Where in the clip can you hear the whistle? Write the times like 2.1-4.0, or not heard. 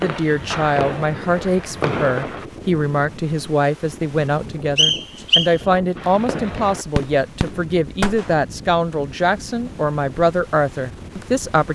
4.8-5.5.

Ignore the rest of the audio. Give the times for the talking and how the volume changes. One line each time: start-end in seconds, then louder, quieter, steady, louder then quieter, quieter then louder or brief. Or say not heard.
0.0-11.6 steady.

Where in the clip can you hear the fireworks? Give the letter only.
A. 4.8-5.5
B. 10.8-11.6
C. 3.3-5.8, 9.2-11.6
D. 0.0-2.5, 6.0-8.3
D.